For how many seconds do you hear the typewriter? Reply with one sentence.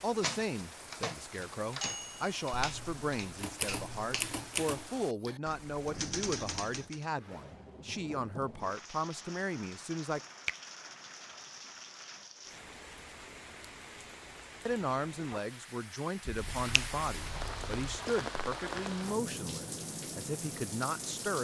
The typewriter can be heard for 7 seconds in total.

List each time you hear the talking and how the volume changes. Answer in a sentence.
You can hear the talking from 0.0 to 10.2 s, at a steady volume; and from 14.7 to 21.4 s, at a steady volume.